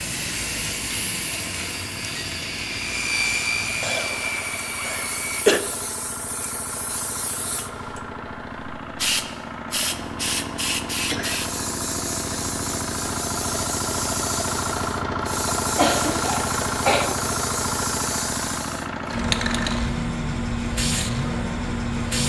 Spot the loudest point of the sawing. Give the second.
3 s.